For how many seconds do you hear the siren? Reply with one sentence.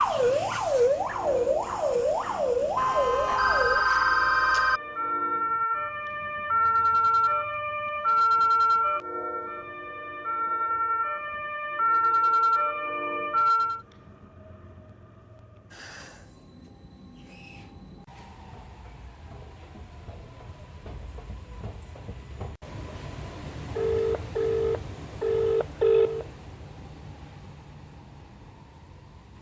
You can hear the siren for 14 seconds altogether.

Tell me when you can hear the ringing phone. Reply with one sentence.
You can hear the ringing phone from 2.8 to 4.8 s and from 23.8 to 26.2 s.